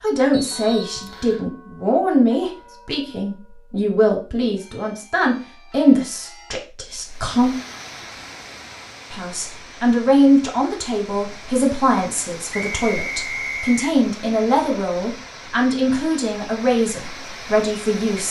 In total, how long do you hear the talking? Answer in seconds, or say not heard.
17 s.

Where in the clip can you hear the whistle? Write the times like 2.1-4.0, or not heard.
0.3-1.4, 12.5-13.9.